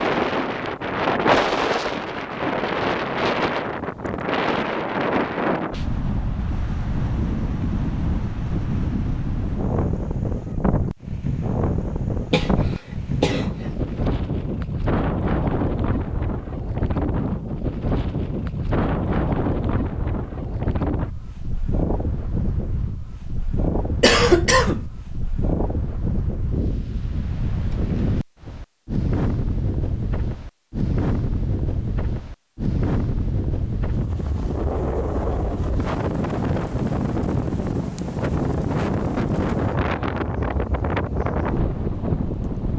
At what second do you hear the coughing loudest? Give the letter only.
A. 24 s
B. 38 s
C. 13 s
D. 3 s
A.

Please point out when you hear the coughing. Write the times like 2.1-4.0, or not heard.
12.3-13.4, 24.0-24.9.